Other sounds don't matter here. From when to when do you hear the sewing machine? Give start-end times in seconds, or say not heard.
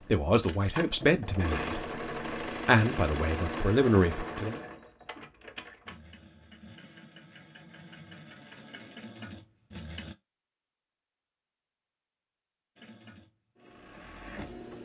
0.0-10.2, 12.8-14.8.